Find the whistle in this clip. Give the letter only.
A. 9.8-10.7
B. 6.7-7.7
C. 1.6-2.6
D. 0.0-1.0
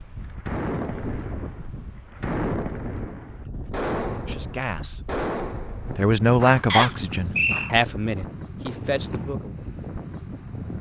B.